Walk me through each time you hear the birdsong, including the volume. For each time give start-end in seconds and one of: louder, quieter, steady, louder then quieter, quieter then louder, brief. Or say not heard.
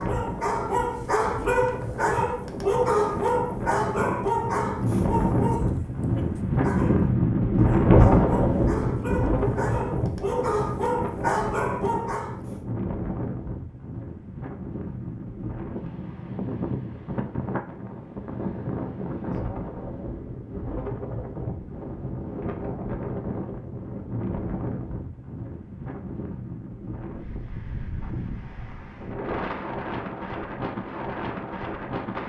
not heard.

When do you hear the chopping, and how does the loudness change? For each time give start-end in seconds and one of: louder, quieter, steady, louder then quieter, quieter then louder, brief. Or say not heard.
not heard.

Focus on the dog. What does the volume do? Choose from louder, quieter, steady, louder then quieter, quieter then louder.
quieter then louder.